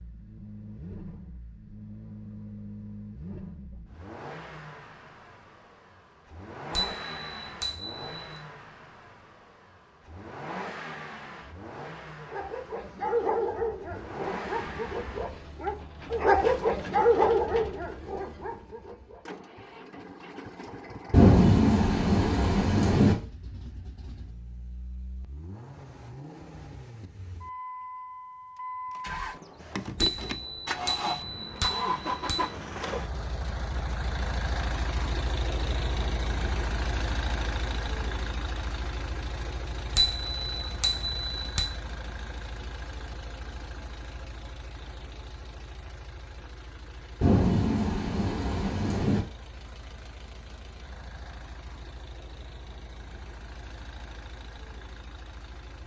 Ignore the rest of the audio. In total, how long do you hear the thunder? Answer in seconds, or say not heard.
4 s.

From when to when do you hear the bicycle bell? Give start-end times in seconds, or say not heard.
6.8-8.1, 30.0-32.5, 40.0-41.7.